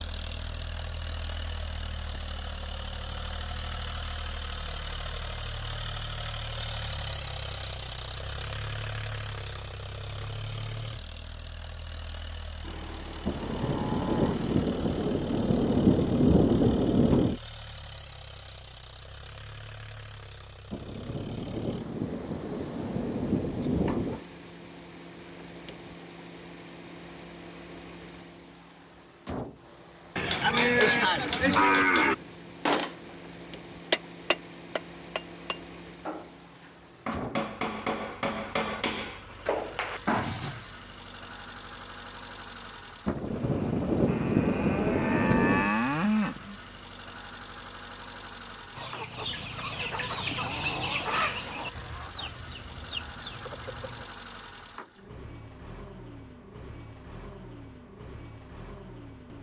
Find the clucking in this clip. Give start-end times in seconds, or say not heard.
48.8-54.0.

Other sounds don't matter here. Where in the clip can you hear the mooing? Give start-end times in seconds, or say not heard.
12.6-14.7, 30.1-32.1, 44.0-46.5.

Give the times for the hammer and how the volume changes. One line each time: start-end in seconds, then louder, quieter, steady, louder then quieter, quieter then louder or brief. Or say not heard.
30.3-33.1 brief
33.9-40.7 quieter then louder.